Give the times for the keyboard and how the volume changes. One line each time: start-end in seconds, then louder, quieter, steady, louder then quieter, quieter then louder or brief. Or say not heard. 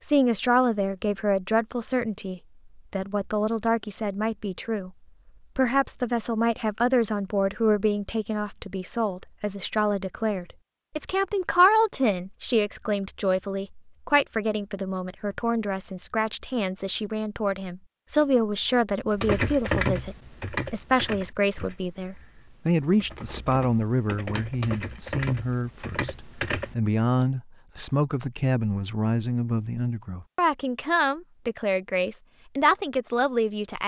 19.2-27.2 quieter then louder.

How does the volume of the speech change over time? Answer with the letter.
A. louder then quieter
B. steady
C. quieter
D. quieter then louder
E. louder
B.